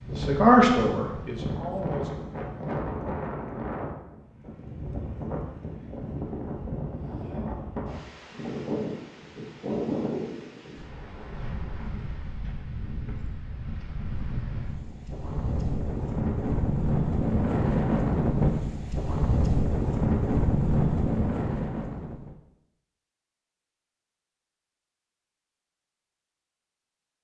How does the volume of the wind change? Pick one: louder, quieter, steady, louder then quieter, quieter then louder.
louder.